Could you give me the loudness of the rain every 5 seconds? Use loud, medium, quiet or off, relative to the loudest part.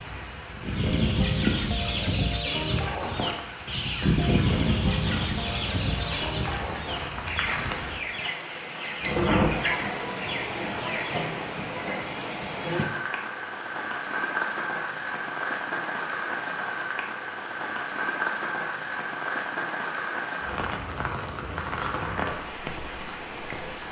medium, loud, loud, loud, loud.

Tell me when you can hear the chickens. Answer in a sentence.
The chickens can be heard from 0.6 to 11.2 s.